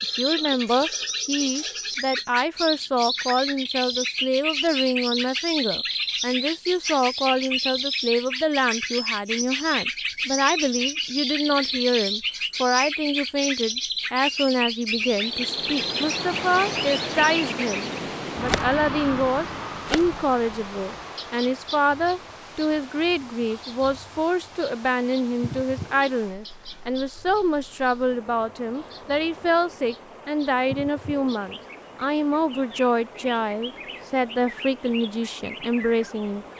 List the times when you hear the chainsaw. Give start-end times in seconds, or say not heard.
not heard.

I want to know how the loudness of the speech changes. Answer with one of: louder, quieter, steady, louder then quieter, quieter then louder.
steady.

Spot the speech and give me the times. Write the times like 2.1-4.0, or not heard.
0.0-36.5.